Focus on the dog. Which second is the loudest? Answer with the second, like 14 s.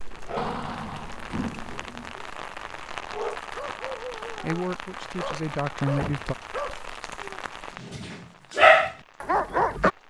9 s.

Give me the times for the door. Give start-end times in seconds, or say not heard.
0.3-2.1, 6.0-6.6.